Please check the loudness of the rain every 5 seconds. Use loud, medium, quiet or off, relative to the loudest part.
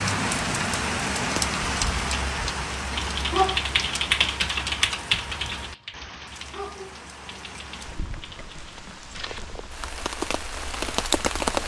loud, quiet, loud.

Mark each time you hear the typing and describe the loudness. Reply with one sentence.
The typing can be heard from 2.9 to 9.6 s, getting quieter.